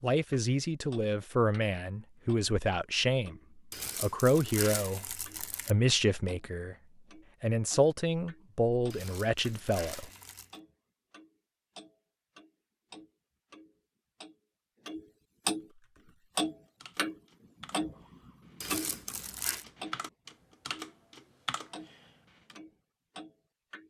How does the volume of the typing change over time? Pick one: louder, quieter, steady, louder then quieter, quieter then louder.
louder.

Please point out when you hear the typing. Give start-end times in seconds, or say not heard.
15.8-22.6.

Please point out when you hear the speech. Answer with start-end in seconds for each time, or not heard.
0.0-6.8, 7.4-10.1.